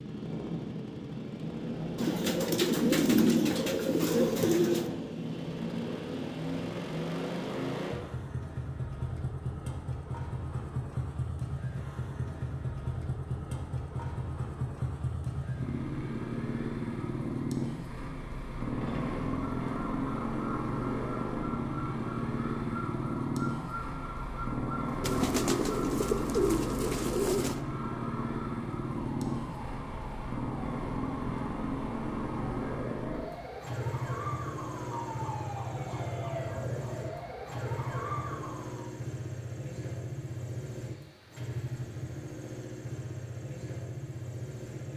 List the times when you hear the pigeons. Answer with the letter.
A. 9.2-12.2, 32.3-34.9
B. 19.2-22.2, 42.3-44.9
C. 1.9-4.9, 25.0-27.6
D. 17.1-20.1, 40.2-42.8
C.